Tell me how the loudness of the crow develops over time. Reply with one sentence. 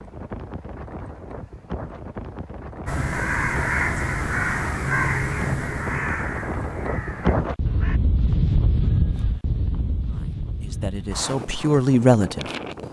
The loudness of the crow goes down.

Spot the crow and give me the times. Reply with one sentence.
You can hear the crow from 2.9 to 8.0 s.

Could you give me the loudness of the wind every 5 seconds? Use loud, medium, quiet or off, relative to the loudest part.
medium, loud, medium.